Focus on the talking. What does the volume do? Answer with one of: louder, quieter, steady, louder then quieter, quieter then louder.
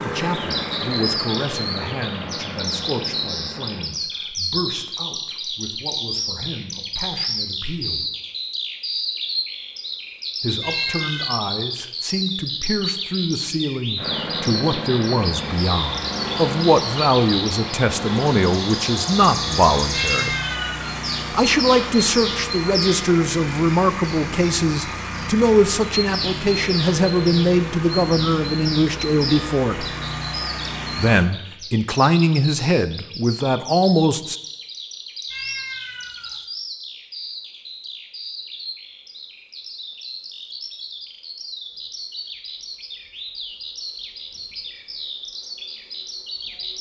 louder.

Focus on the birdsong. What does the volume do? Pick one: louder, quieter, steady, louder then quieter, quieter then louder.
quieter.